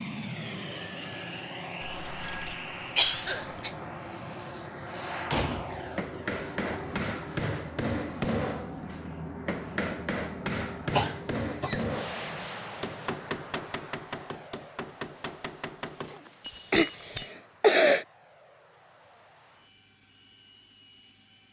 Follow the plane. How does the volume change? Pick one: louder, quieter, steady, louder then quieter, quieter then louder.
quieter.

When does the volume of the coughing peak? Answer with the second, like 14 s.
18 s.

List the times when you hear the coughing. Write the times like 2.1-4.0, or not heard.
1.8-3.7, 10.9-11.8, 16.1-18.1.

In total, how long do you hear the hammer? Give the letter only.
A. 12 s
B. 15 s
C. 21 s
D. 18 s
A.